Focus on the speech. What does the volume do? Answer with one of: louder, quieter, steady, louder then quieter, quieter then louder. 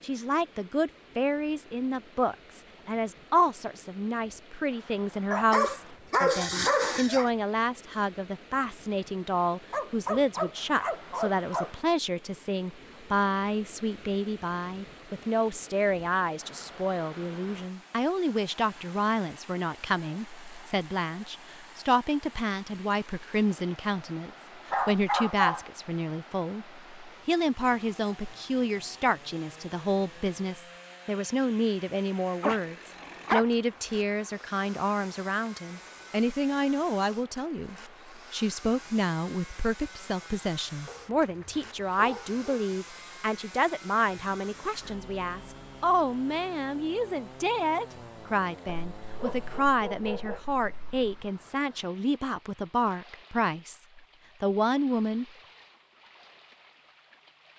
steady.